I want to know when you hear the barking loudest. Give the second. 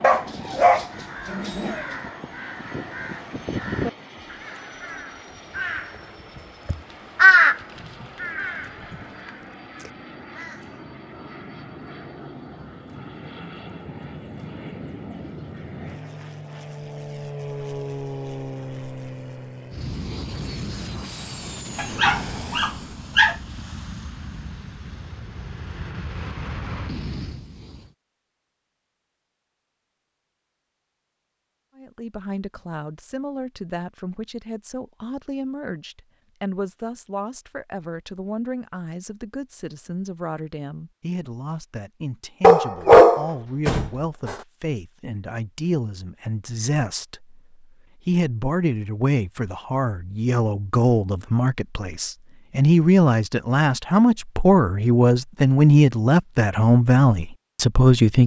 43 s.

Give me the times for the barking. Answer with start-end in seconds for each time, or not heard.
0.0-1.8, 21.8-23.4, 42.4-44.4.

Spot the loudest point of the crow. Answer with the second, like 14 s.
7 s.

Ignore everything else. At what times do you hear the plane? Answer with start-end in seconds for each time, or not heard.
0.0-27.9.